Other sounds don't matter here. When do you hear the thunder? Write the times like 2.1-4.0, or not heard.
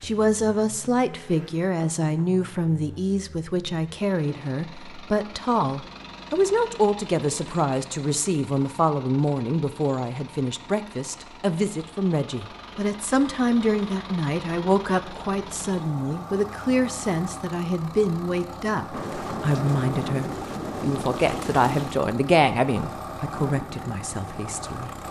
2.0-3.1, 18.9-22.0.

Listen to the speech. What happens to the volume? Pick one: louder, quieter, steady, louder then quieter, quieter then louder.
steady.